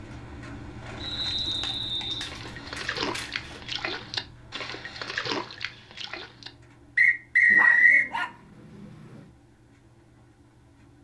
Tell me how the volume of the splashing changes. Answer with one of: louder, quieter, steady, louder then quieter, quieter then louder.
louder.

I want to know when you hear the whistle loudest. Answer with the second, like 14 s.
8 s.